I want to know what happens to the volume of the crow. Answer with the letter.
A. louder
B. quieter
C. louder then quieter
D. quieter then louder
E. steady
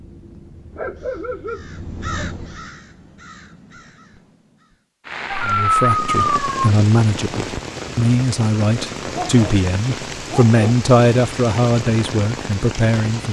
C.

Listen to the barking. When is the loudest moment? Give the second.
6 s.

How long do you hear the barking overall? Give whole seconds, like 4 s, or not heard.
4 s.